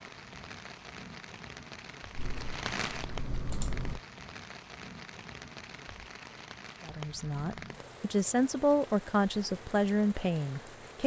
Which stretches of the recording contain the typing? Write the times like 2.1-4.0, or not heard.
2.1-4.0.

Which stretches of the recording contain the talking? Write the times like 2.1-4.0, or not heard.
6.8-11.0.